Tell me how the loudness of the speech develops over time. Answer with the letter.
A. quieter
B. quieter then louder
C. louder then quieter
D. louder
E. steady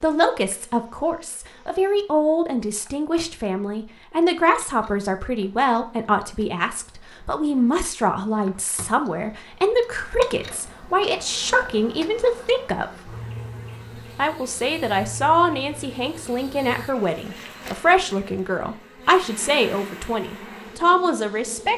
E.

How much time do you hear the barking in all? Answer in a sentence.
You can't hear the barking here.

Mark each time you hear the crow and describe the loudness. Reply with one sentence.
You can't hear the crow here.